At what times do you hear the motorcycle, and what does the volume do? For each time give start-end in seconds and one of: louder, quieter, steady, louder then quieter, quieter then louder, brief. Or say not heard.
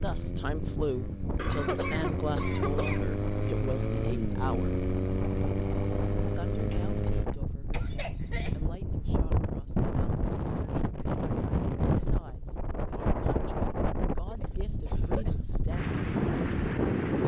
0.0-7.3 louder.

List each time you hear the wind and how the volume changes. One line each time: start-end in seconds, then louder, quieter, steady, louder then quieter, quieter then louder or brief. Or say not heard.
0.0-17.2 louder.